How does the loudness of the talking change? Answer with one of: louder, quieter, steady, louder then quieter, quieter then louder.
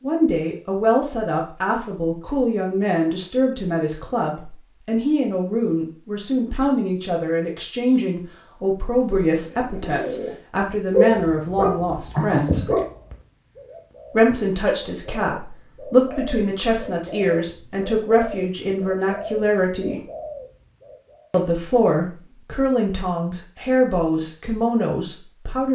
steady.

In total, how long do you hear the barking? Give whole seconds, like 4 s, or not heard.
2 s.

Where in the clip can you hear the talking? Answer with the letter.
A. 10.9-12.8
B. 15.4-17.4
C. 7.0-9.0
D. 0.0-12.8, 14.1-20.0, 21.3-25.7
D.